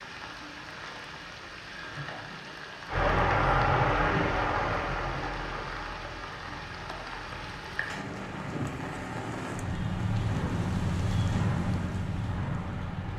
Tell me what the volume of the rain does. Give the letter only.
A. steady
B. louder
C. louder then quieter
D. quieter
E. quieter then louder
B.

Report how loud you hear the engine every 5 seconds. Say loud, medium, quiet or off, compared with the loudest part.
loud, quiet, quiet.